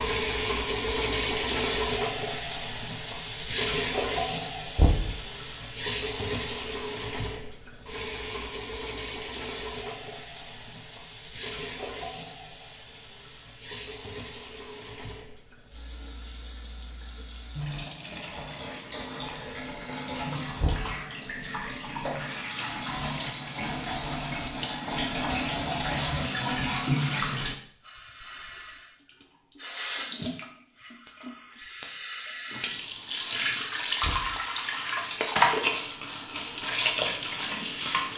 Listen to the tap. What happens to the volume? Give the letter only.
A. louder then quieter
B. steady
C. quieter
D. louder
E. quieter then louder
E.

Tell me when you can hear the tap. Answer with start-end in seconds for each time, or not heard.
0.0-38.1.